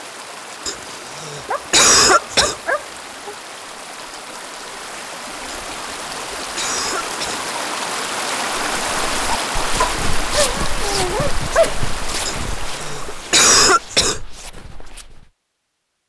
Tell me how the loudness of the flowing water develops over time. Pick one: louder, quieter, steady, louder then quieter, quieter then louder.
louder then quieter.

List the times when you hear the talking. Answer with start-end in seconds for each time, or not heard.
not heard.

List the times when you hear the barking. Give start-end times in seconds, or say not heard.
1.5-3.4, 9.8-11.8.